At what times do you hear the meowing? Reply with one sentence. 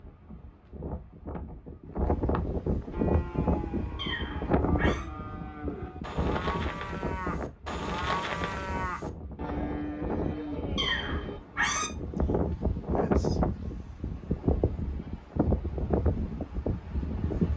You can hear the meowing from 4.0 to 5.1 s and from 10.8 to 11.9 s.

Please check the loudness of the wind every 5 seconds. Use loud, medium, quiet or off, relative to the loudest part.
loud, medium, loud, loud.